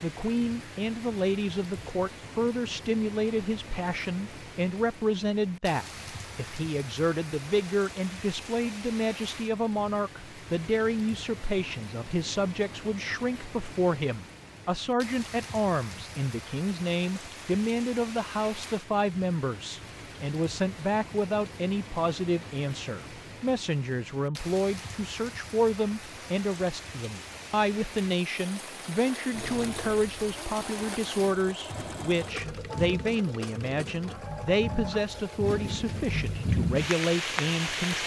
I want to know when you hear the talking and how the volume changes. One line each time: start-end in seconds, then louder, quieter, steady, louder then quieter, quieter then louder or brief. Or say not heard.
0.0-38.0 steady.